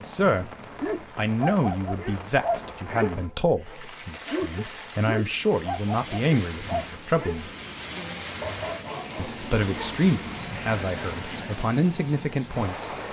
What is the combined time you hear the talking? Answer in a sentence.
You can hear the talking for 11 seconds altogether.